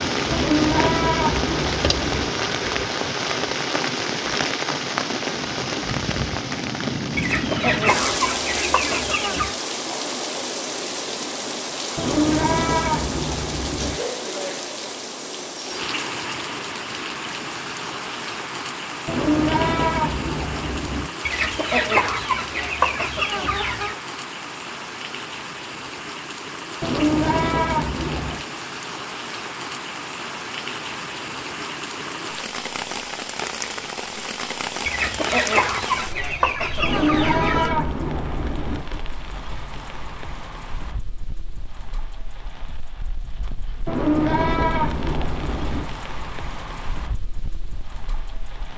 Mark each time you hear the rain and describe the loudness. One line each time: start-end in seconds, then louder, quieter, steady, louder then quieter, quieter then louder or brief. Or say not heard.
0.0-48.7 quieter.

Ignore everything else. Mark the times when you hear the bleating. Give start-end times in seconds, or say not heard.
0.3-2.3, 11.9-14.0, 19.1-21.1, 26.8-28.4, 36.8-38.9, 43.9-45.9.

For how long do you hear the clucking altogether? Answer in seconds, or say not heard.
8 s.